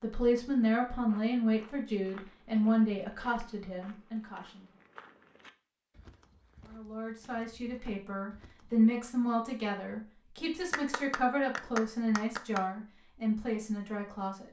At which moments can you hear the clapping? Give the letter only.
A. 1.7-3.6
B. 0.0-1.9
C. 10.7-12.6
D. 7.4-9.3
C.